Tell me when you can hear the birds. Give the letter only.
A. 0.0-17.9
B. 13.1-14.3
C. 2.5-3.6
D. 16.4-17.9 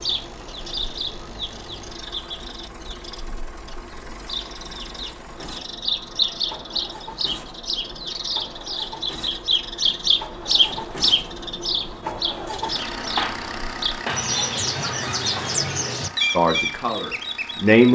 A.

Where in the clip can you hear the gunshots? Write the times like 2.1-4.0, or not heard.
13.1-14.3.